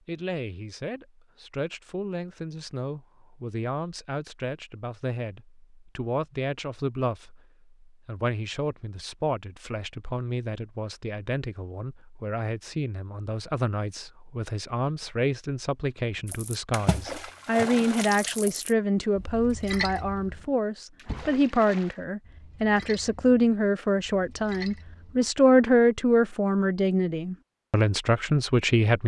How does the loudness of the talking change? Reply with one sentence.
The loudness of the talking goes up.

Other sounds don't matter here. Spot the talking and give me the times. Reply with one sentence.
The talking can be heard from 0.1 to 29.0 s.